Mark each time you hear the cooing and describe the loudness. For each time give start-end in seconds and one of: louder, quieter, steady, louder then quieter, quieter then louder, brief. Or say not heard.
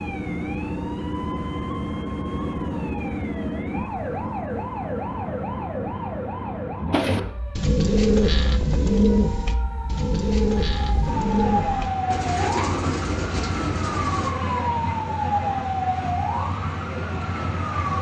6.9-14.3 quieter.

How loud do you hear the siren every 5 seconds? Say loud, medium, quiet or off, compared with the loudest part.
loud, medium, loud, loud.